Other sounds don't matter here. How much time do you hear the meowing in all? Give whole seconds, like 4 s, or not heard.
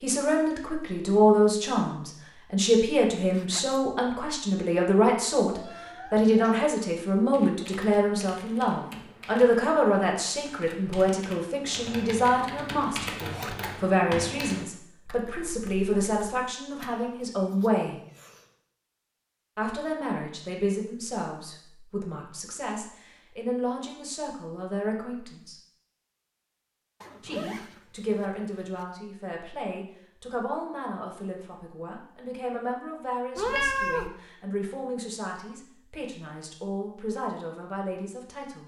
4 s.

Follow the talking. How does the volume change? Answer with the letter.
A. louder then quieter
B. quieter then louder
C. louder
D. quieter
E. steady
D.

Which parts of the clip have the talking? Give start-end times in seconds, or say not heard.
0.0-18.0, 19.6-25.6, 27.2-38.6.